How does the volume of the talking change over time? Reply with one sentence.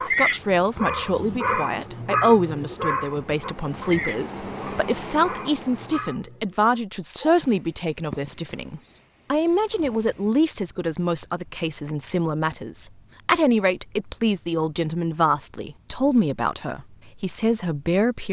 The loudness of the talking stays about the same.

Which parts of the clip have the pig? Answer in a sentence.
The pig can't be heard in this clip.